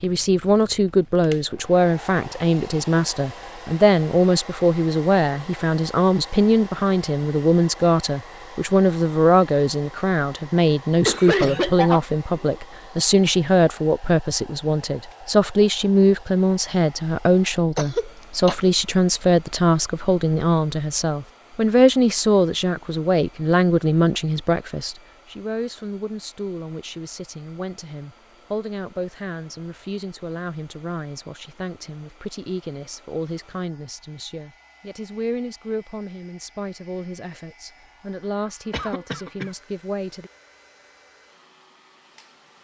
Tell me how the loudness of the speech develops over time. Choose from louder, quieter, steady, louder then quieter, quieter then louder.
quieter.